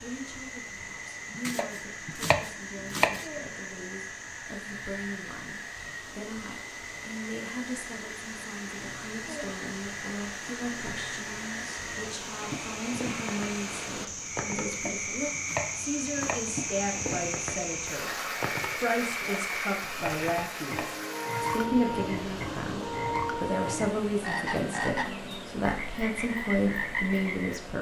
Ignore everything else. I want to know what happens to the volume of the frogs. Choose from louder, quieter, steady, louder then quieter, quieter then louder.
louder.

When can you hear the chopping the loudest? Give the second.
3 s.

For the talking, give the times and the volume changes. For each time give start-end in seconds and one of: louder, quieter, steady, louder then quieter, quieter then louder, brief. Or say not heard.
0.0-27.7 louder.